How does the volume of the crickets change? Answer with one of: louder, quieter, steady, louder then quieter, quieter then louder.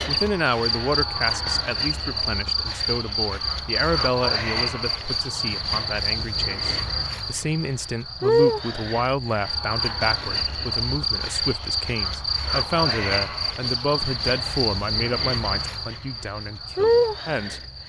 steady.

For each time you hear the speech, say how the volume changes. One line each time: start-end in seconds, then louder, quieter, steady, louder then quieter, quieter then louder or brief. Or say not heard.
0.1-17.6 steady.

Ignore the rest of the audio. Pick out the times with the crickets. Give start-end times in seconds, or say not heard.
0.0-17.8.